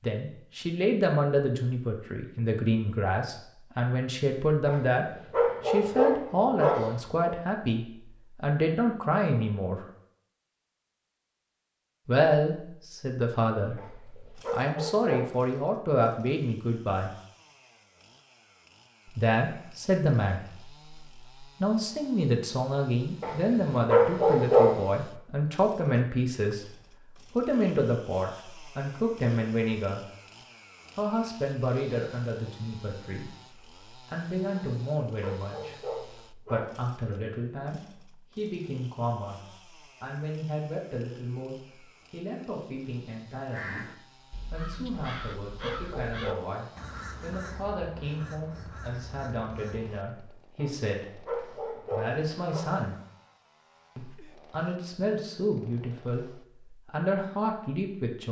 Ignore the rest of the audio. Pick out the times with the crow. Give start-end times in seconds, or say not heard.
43.5-50.0.